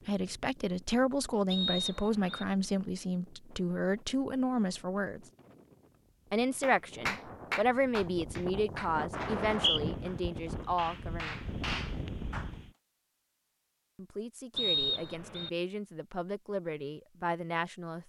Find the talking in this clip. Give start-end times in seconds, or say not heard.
0.1-5.2, 6.3-11.4, 13.9-18.0.